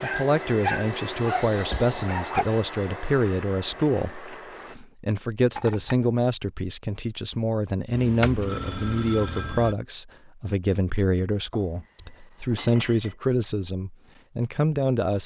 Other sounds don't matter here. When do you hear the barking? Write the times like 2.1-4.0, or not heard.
0.0-2.5.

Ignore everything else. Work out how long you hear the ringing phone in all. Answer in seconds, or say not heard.
2 s.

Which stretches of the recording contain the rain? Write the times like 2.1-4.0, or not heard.
not heard.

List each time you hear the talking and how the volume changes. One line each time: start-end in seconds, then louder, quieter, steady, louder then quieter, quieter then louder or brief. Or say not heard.
0.0-15.2 steady.